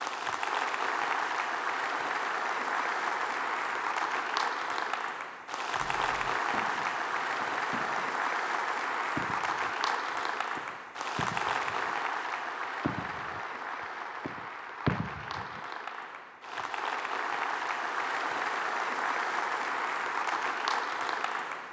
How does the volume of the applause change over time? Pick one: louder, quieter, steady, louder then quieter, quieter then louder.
quieter then louder.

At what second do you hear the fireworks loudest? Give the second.
15 s.